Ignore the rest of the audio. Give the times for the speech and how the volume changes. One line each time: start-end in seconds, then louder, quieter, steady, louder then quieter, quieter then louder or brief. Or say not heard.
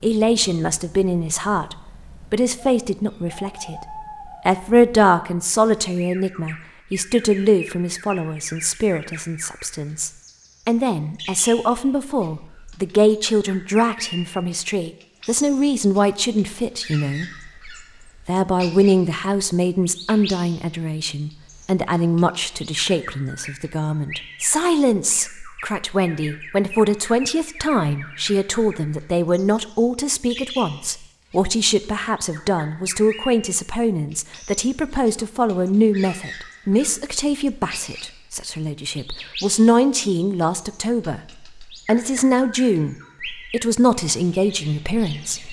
0.0-45.4 steady.